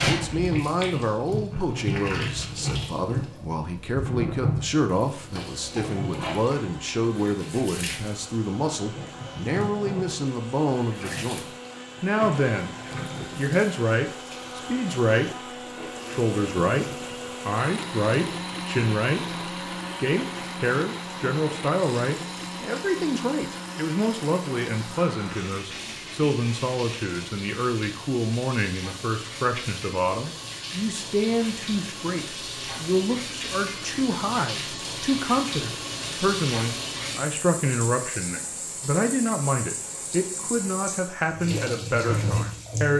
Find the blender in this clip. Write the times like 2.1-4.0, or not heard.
5.3-27.2.